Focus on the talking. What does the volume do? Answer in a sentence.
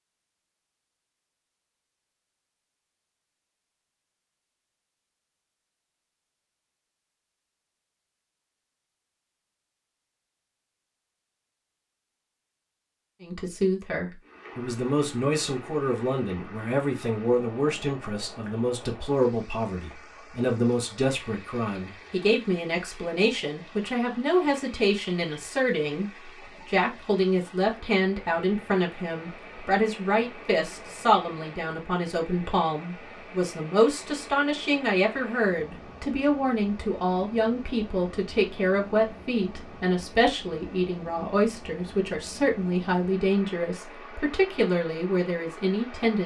The volume of the talking stays about the same.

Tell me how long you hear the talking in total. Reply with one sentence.
The talking can be heard for 33 seconds in total.